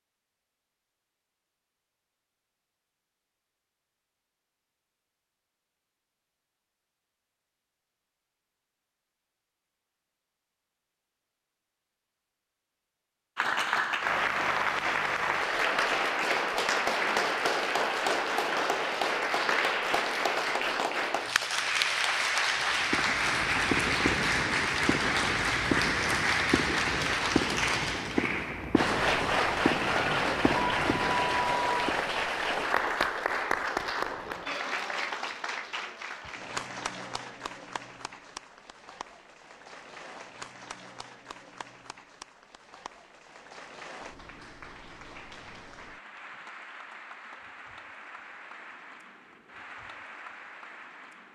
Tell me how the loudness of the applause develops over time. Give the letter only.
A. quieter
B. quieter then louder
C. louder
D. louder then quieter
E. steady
A.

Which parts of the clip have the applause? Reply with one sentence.
The applause can be heard from 13.3 to 51.3 s.